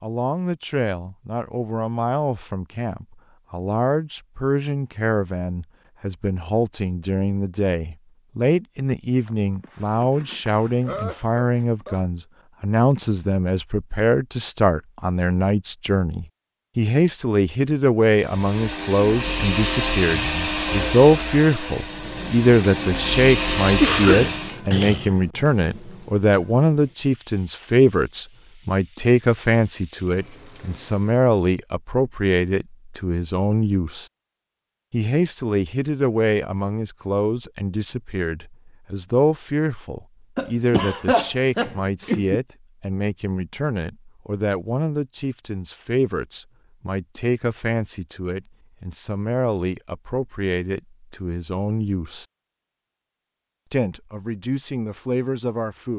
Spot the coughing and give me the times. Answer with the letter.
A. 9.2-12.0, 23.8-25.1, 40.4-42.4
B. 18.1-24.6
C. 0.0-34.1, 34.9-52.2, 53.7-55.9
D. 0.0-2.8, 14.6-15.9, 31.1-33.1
A.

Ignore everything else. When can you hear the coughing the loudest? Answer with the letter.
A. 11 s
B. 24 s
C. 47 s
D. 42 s
B.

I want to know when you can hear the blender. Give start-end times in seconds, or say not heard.
18.1-24.6.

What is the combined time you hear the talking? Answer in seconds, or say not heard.
54 s.